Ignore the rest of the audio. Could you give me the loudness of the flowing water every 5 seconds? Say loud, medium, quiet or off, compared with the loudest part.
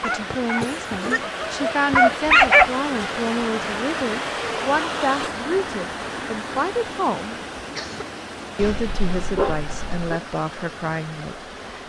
loud, loud, medium.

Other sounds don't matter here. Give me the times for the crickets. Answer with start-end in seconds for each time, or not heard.
not heard.